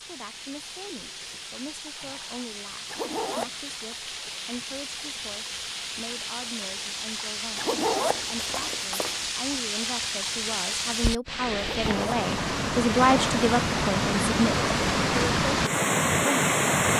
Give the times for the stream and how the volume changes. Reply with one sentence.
The stream can be heard from 0.0 to 16.9 s, getting louder.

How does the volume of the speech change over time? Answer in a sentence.
The loudness of the speech goes up.